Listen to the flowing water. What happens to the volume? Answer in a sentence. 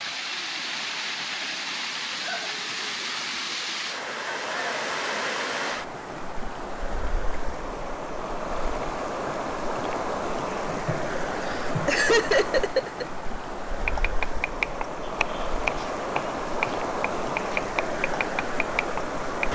The volume of the flowing water stays about the same.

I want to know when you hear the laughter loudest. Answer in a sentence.
The loudest moment of the laughter is at 12 seconds.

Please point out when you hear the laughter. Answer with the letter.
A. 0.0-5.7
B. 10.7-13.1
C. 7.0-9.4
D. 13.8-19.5
B.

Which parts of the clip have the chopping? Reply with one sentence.
The chopping can be heard from 13.8 to 19.5 s.